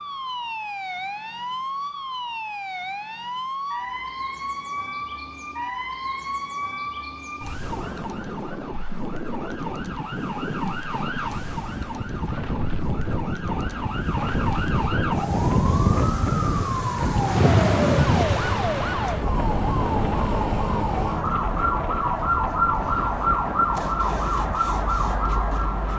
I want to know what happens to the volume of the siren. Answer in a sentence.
The loudness of the siren goes up.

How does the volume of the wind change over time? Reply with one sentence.
The volume of the wind goes up, then down.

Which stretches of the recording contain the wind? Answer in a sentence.
The wind can be heard from 7.6 to 25.9 s.